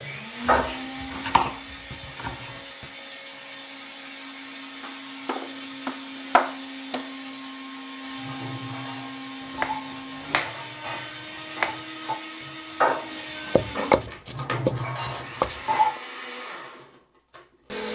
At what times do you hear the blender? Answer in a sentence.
You can hear the blender from 0.0 to 17.9 s.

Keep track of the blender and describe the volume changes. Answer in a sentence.
The loudness of the blender stays about the same.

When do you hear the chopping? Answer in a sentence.
You can hear the chopping from 0.4 to 2.5 s, from 4.8 to 7.1 s, from 9.4 to 11.8 s and from 13.5 to 16.0 s.